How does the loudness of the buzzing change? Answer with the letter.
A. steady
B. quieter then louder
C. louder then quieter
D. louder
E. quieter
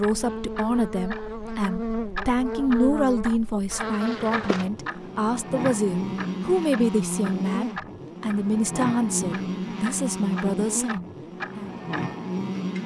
A.